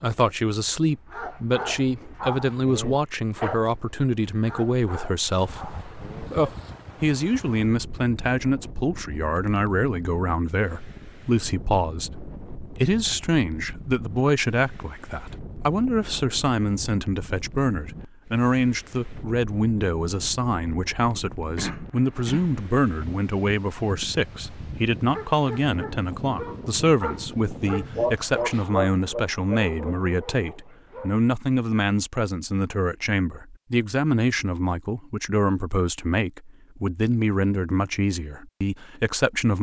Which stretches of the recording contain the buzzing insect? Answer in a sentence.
You can't hear the buzzing insect here.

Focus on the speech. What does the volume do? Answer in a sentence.
The volume of the speech stays about the same.